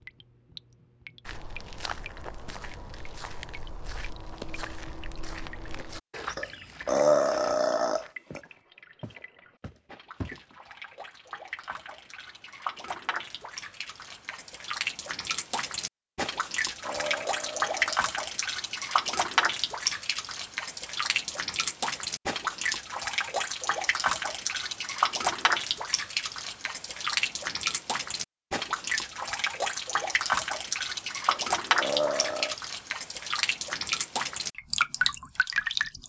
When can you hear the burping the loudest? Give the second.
7 s.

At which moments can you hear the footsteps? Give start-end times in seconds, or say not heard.
1.2-10.6.